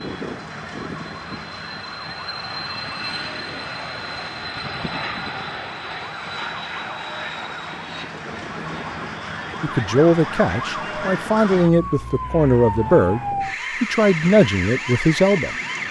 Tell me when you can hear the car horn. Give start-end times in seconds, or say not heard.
not heard.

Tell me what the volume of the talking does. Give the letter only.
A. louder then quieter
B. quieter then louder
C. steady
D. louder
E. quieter
C.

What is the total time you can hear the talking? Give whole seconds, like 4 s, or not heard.
6 s.